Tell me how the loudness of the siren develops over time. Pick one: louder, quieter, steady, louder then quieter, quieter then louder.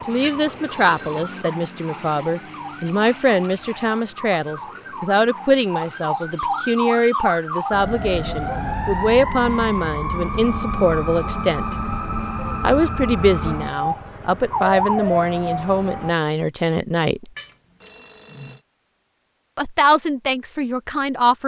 louder.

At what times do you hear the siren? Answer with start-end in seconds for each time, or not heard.
0.0-16.1.